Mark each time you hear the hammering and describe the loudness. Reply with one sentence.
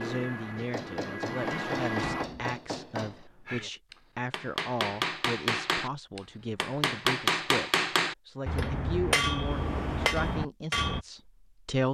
You can hear the hammering from 0.6 to 11.1 s, getting louder.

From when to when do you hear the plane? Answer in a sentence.
You can hear the plane from 0.0 to 2.2 s.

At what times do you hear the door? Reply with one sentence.
The door can be heard from 1.9 to 2.5 s.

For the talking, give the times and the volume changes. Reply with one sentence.
You can hear the talking from 0.0 to 11.8 s, at a steady volume.